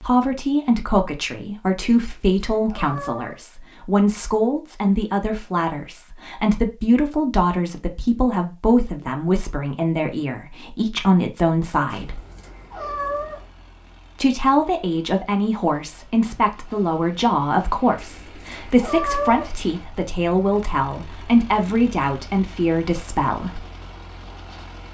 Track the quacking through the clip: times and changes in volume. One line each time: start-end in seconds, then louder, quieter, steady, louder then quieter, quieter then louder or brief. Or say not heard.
not heard.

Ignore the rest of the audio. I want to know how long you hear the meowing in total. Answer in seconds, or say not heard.
5 s.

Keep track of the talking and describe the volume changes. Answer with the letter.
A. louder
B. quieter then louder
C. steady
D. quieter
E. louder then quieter
C.